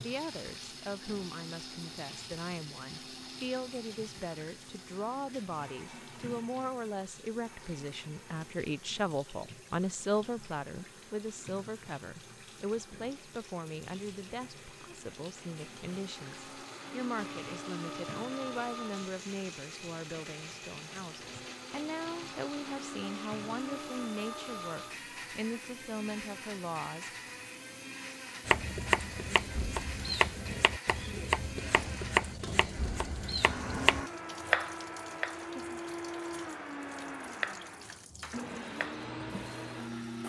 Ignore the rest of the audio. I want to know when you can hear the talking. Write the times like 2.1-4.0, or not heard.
0.0-27.1.